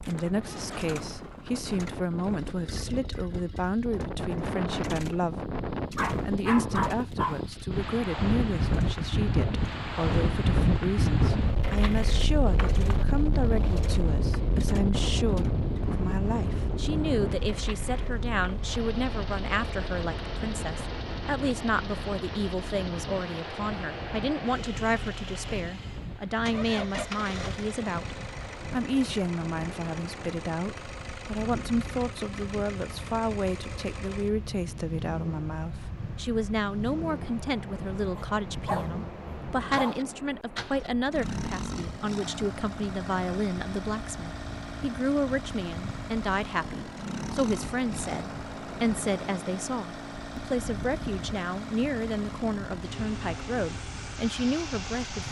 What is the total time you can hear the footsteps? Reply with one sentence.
You can't hear the footsteps here.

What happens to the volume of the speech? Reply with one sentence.
The volume of the speech stays about the same.